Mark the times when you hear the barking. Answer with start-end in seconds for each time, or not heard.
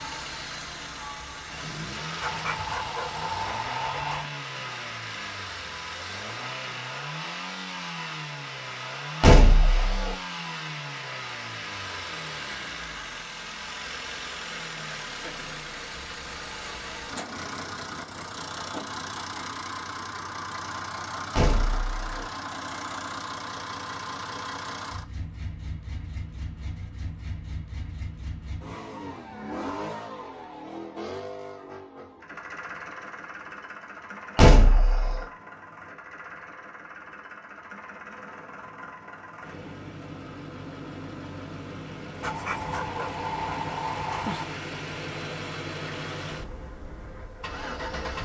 2.2-4.3, 42.2-44.6.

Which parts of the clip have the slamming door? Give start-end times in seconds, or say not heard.
9.2-10.2, 21.4-22.1, 34.4-35.2.